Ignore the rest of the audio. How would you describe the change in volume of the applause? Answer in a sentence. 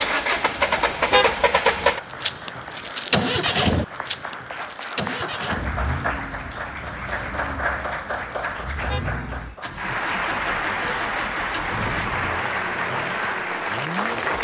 The loudness of the applause goes up.